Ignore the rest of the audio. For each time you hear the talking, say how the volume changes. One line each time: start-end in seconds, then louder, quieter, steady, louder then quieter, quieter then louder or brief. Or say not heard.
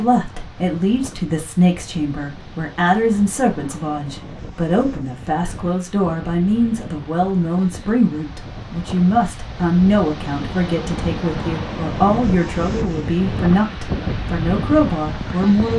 0.0-15.7 steady.